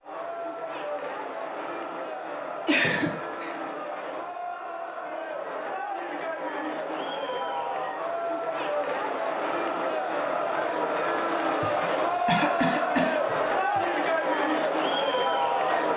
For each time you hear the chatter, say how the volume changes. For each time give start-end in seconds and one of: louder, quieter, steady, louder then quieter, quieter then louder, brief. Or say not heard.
0.0-15.9 louder.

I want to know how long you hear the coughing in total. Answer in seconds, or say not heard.
3 s.